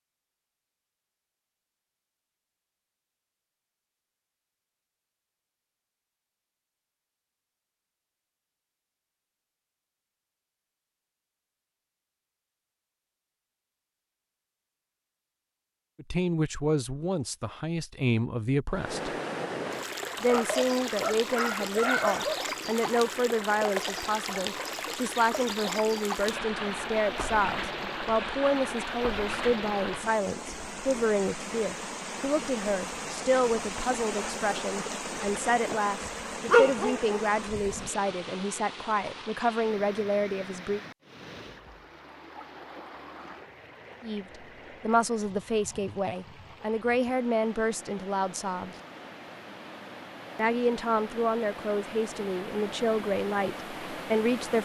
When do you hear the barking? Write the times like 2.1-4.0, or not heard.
20.1-22.4, 36.5-37.2.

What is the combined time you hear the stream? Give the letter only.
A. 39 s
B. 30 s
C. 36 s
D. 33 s
C.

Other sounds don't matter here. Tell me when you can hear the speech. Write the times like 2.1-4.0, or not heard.
15.9-19.1, 20.2-40.8, 44.0-48.8, 50.4-54.6.